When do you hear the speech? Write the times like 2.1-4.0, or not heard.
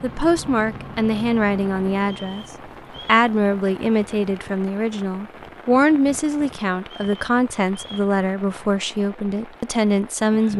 0.0-2.5, 3.0-10.5.